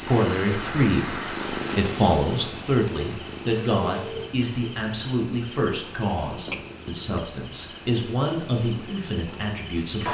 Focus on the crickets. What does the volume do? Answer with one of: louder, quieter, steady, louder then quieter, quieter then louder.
steady.